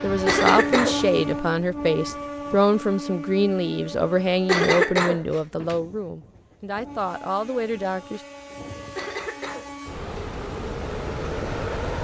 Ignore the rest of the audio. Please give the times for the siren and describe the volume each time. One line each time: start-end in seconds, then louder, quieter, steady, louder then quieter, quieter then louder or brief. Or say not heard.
not heard.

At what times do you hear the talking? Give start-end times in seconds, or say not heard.
0.0-8.2.